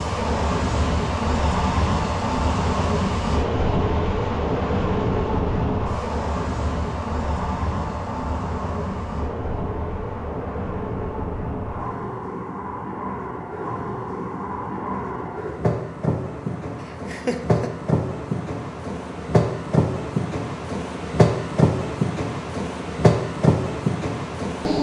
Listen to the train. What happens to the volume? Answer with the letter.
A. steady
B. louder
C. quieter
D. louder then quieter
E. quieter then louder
E.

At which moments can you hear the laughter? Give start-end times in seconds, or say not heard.
16.9-17.7.